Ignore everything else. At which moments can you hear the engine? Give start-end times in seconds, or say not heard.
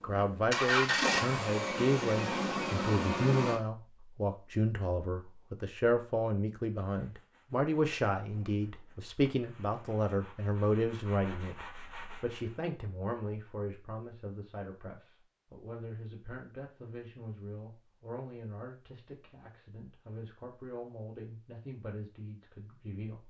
0.1-3.6.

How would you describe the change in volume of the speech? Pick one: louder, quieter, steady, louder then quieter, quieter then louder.
quieter.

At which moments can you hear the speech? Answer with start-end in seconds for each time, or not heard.
0.0-23.2.